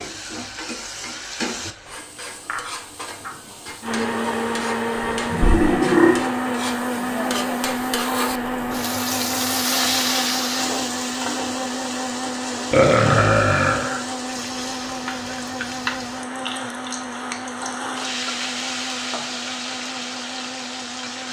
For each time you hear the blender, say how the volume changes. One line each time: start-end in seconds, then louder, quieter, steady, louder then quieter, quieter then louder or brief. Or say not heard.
3.8-21.2 quieter.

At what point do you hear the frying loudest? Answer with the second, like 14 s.
10 s.